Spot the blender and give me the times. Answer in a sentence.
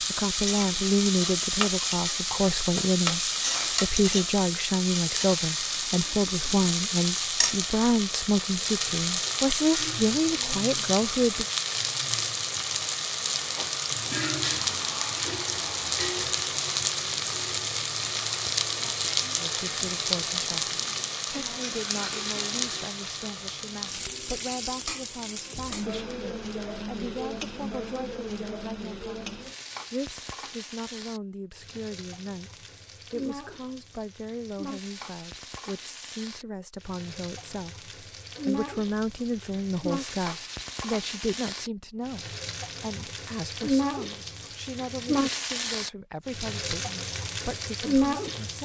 You can't hear the blender here.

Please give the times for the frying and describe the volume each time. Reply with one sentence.
You can hear the frying from 0.0 to 48.6 s, getting quieter then louder.